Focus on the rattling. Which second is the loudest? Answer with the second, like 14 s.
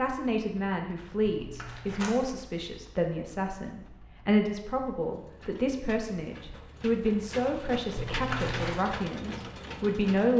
8 s.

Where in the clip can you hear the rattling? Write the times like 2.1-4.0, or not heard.
1.4-2.1, 8.0-8.8.